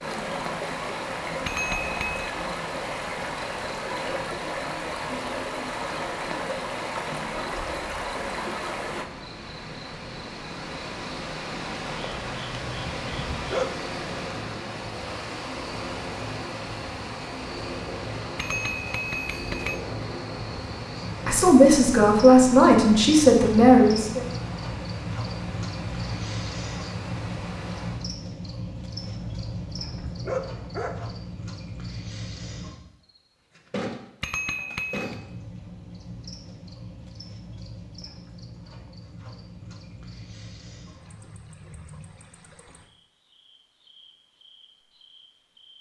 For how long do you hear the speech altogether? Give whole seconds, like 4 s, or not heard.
3 s.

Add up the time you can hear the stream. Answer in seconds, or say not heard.
28 s.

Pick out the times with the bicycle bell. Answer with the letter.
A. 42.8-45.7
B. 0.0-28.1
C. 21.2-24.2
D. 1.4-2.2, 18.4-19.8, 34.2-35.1
D.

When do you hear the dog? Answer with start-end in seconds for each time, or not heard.
12.1-13.8, 28.9-31.2.